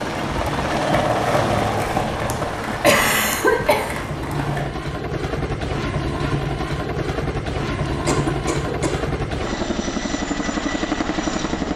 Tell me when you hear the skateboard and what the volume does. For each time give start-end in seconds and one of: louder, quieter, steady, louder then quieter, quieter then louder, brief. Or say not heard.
0.2-4.7 quieter.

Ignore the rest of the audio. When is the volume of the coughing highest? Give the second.
3 s.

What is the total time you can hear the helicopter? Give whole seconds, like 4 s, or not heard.
12 s.